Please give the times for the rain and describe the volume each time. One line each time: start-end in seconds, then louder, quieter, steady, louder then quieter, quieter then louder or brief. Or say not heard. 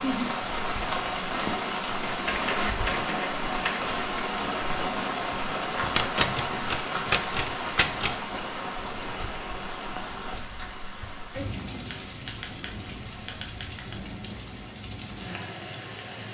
0.0-16.2 quieter.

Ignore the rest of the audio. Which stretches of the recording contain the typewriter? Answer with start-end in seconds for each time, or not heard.
2.2-3.9, 5.8-8.2, 11.9-14.2.